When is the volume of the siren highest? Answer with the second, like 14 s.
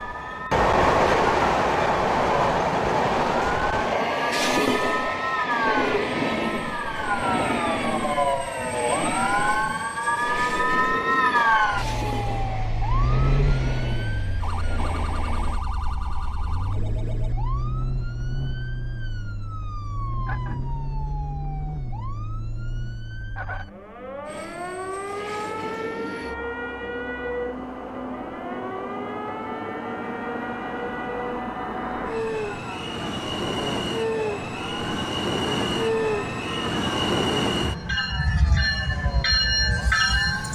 11 s.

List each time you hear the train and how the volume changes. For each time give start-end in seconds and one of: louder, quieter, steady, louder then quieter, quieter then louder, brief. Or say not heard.
0.0-15.7 quieter
24.2-40.5 louder.